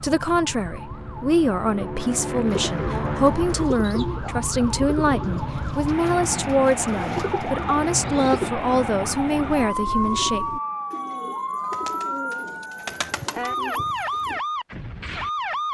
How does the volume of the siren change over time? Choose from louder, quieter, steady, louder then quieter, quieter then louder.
louder.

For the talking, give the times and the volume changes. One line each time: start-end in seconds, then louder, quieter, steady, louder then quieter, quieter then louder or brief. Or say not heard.
0.0-10.4 steady.